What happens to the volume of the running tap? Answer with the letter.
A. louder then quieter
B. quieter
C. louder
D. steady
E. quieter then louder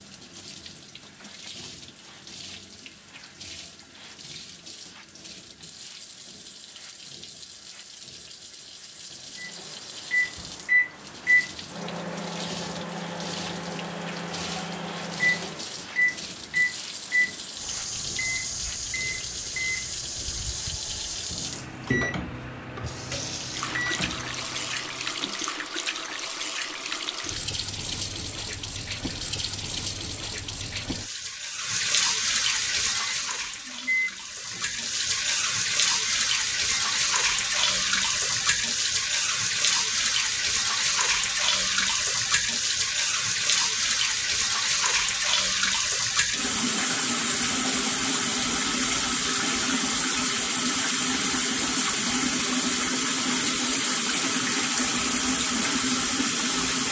C.